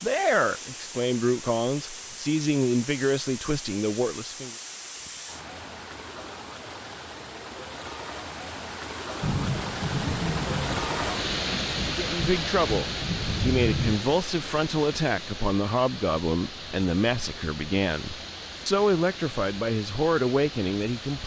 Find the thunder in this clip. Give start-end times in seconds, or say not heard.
9.2-13.9.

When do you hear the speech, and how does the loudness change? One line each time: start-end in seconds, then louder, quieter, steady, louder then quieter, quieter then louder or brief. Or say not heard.
0.0-4.5 steady
11.9-21.2 steady.